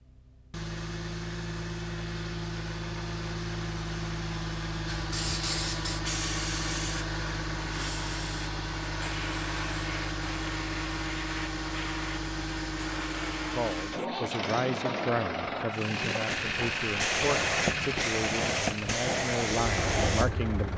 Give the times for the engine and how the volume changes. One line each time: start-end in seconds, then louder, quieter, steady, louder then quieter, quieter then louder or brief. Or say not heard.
0.0-20.7 steady.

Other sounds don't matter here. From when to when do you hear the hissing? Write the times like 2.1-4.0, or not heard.
4.9-14.1, 16.2-20.7.